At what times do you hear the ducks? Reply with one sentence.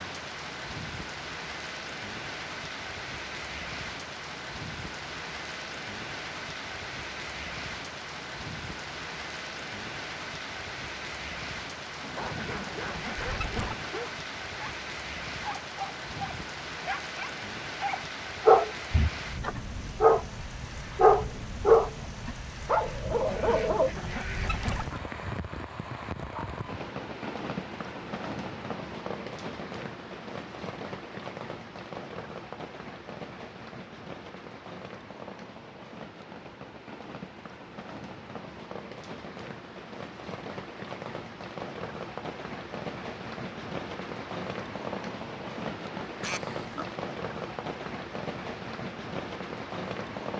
You can hear the ducks from 12.0 to 13.9 s, from 23.1 to 25.0 s and from 46.2 to 46.9 s.